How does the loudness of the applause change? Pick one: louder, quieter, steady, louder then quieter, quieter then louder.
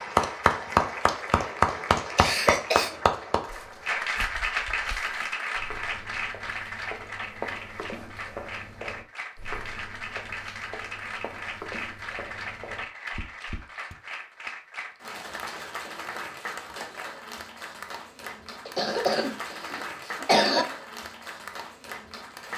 quieter.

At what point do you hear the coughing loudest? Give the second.
20 s.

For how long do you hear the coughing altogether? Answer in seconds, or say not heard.
3 s.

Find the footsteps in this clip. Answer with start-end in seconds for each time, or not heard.
3.5-13.9.